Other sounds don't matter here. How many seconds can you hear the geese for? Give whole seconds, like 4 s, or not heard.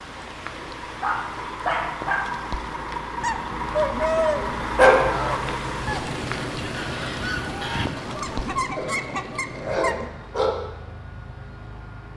7 s.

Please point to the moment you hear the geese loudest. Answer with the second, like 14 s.
4 s.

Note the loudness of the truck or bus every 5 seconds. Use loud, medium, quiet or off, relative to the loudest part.
loud, loud, medium.